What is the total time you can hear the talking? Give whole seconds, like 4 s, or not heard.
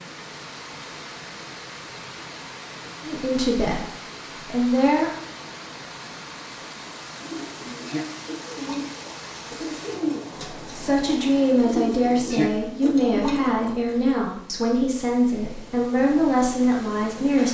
9 s.